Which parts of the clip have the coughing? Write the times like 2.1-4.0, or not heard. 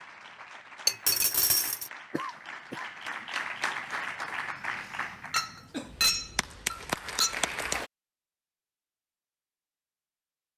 2.1-2.9.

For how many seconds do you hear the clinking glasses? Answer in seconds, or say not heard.
3 s.